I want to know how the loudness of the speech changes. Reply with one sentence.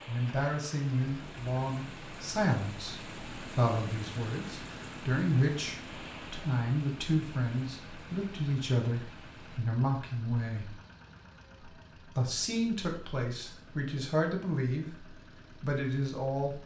The loudness of the speech stays about the same.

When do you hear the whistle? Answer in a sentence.
The whistle can't be heard in this clip.